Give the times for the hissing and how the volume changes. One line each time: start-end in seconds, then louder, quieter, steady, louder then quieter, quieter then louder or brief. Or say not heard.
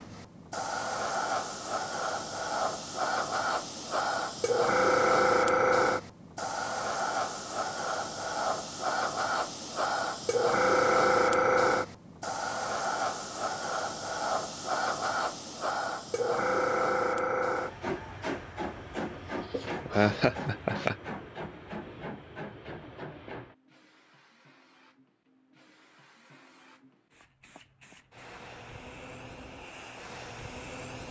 0.0-31.0 quieter.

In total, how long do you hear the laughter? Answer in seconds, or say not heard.
2 s.